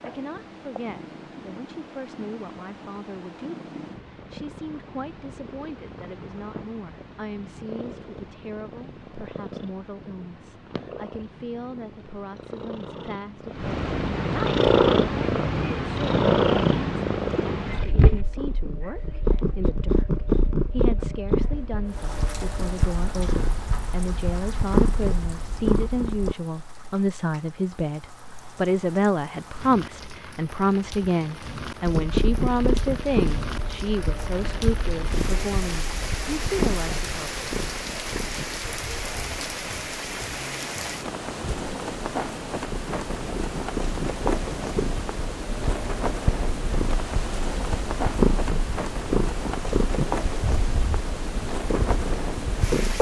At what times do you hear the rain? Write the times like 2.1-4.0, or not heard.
21.9-52.9.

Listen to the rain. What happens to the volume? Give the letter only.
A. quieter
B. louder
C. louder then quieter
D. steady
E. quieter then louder
B.